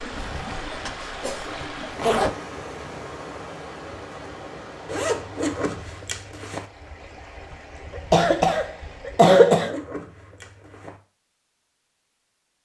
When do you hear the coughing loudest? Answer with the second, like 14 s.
9 s.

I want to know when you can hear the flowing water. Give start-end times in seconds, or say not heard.
0.0-9.2.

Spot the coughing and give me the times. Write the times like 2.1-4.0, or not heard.
0.6-1.6, 8.0-9.8.